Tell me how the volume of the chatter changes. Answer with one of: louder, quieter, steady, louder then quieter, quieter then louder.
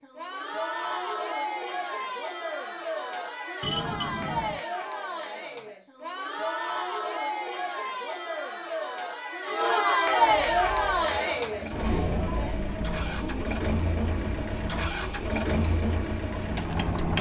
louder then quieter.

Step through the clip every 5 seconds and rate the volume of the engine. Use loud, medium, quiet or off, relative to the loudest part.
off, off, medium, loud.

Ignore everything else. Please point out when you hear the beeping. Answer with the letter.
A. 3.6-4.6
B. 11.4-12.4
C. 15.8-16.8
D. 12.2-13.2
A.